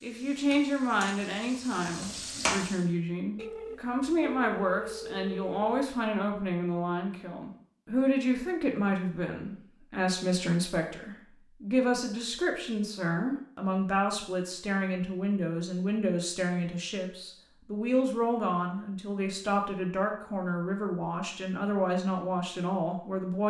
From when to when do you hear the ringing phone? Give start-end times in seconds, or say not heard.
3.4-5.9.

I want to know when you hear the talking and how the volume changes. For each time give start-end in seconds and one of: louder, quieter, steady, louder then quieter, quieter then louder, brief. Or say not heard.
0.0-23.4 steady.